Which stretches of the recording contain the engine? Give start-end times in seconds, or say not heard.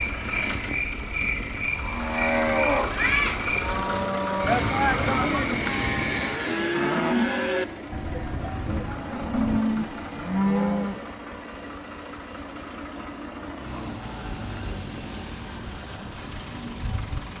0.0-17.3.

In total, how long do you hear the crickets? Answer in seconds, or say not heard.
17 s.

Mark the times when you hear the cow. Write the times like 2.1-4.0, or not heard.
1.8-11.1.